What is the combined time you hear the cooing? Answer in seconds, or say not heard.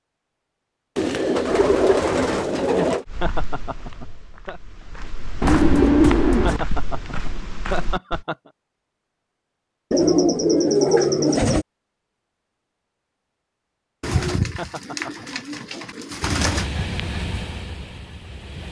8 s.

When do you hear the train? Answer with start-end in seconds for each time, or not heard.
16.2-18.6.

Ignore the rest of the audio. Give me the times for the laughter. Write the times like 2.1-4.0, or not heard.
3.2-4.6, 6.4-8.5, 14.6-15.4.